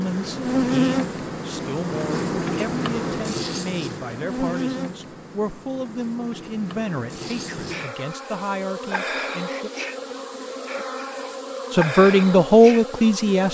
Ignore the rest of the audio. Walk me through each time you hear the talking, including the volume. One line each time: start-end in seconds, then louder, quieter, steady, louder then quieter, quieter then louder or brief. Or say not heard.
0.0-9.7 steady
11.7-13.5 brief.